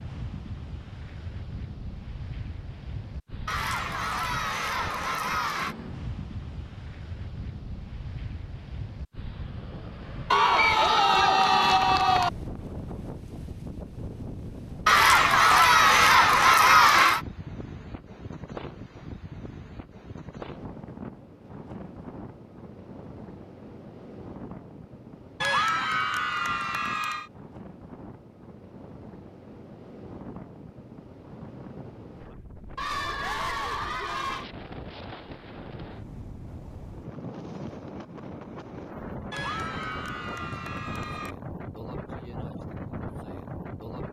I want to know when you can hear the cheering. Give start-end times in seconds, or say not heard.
3.5-5.8, 10.3-12.3, 14.8-17.2, 25.4-27.2, 32.8-34.5, 39.3-41.4.